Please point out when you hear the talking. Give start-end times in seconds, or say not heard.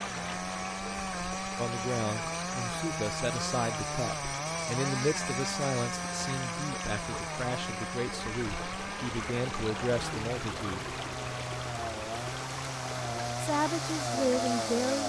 1.6-10.9, 13.4-15.0.